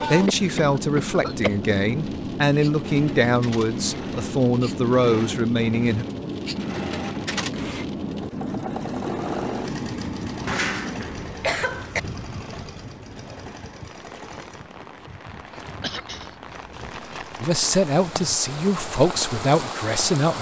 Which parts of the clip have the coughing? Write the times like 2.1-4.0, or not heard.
0.2-1.6, 10.4-12.0, 15.8-16.4.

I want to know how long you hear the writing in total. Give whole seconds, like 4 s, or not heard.
not heard.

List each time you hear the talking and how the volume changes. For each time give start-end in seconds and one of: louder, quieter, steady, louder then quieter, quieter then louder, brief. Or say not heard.
0.1-6.0 steady
17.4-20.3 brief.